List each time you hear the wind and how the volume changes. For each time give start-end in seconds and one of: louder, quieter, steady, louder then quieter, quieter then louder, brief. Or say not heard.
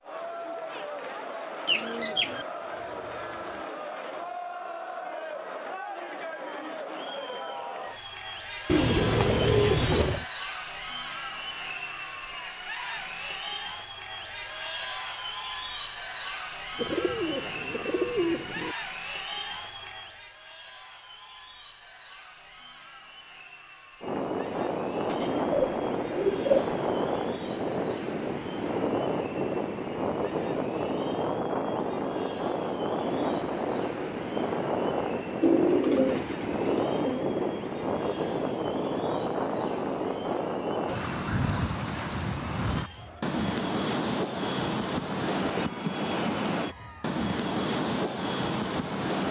24.0-49.2 steady.